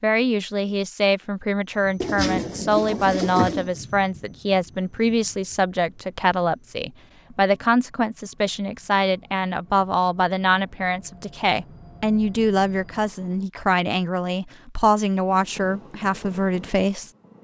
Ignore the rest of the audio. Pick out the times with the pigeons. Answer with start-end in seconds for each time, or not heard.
2.0-3.7.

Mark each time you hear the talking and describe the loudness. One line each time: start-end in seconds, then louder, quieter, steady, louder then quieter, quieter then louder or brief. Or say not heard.
0.0-17.1 steady.